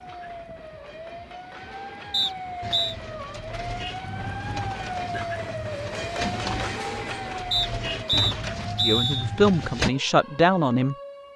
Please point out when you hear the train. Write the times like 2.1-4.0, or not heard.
0.0-8.6.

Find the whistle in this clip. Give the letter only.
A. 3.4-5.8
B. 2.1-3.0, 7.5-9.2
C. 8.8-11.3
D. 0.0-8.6
B.